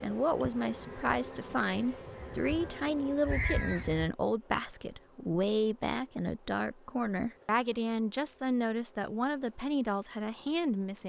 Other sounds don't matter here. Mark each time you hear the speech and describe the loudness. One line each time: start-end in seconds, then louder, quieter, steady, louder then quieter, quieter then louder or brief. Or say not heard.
0.0-11.0 steady.